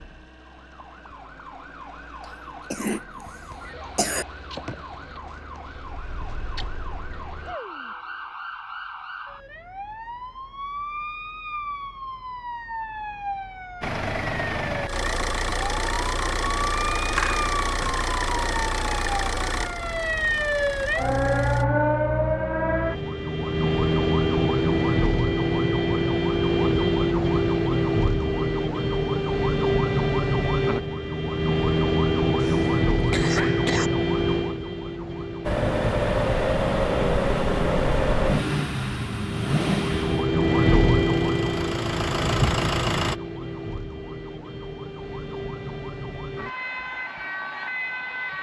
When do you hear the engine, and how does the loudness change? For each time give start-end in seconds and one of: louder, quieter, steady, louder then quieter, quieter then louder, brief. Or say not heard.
13.8-21.6 quieter
35.5-43.2 quieter then louder.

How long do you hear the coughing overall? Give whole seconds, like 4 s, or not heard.
4 s.